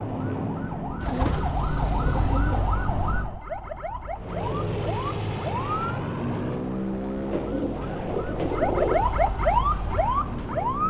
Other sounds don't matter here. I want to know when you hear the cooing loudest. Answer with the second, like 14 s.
9 s.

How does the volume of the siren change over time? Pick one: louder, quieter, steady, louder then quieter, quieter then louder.
quieter then louder.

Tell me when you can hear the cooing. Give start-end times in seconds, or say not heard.
1.0-2.6, 7.3-9.2.